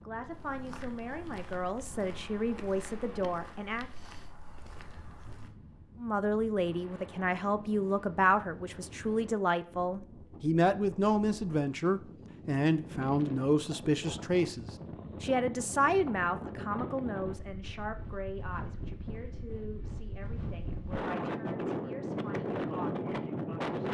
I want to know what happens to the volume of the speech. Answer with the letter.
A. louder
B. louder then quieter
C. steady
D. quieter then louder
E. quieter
B.